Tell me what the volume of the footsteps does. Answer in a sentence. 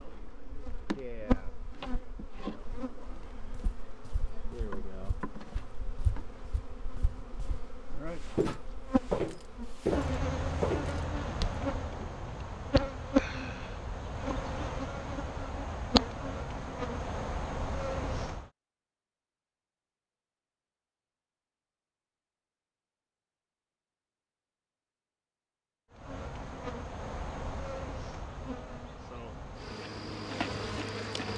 The loudness of the footsteps goes up.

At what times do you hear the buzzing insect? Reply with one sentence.
You can hear the buzzing insect from 0.0 to 18.5 s and from 25.9 to 31.3 s.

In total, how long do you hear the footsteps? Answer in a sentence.
You can hear the footsteps for 8 seconds altogether.